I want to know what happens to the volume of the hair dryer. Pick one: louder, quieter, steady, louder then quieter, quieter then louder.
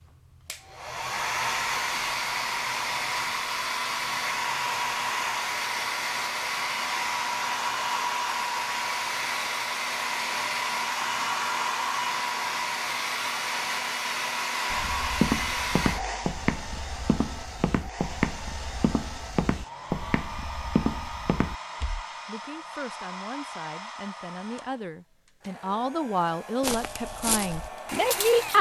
quieter.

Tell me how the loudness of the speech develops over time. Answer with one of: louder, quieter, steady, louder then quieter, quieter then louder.
louder.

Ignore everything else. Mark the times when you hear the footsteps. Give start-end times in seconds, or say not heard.
14.7-22.1, 26.6-28.5.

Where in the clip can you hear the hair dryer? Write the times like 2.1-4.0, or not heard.
0.0-28.5.